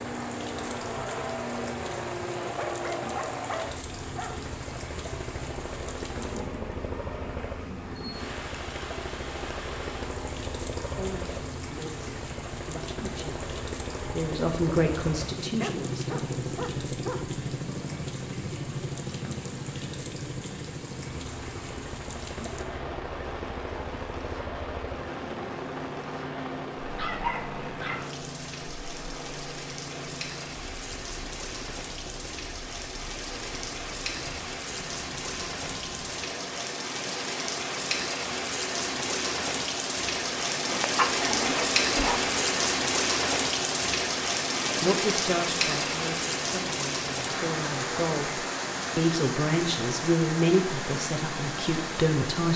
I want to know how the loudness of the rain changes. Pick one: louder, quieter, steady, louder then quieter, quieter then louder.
louder.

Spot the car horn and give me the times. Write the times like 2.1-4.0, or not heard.
not heard.